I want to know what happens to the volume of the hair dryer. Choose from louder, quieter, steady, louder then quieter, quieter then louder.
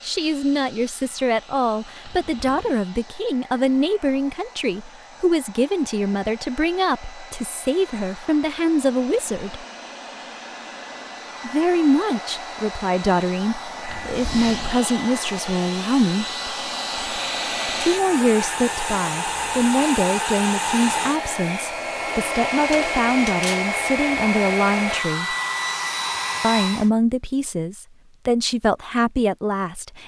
louder.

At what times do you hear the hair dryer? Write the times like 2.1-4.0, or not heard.
0.0-26.9.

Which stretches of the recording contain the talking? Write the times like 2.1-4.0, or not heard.
0.0-9.7, 11.4-16.4, 17.8-25.4, 26.4-30.0.